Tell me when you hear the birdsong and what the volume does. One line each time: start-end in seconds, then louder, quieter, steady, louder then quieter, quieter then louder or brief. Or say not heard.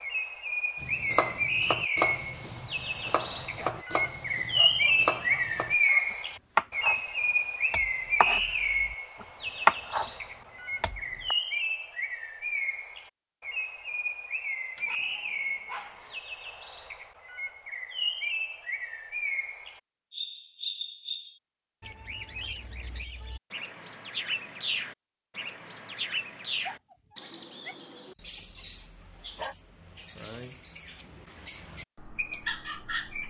0.0-33.2 quieter.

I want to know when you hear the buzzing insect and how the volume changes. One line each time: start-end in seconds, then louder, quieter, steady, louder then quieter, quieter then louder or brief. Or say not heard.
not heard.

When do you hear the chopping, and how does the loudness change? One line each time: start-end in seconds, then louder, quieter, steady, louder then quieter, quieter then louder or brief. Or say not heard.
0.8-7.0 quieter then louder
7.7-10.1 brief
10.8-11.3 brief.